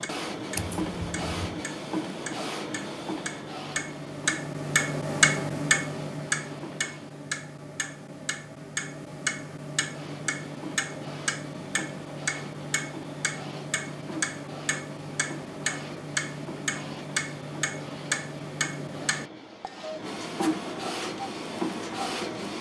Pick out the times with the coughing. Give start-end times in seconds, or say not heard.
0.6-1.6.